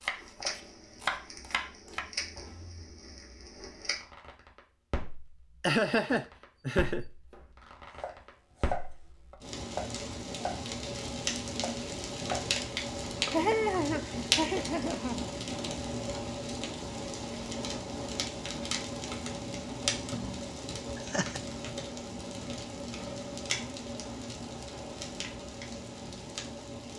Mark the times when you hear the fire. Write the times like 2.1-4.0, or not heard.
0.1-26.9.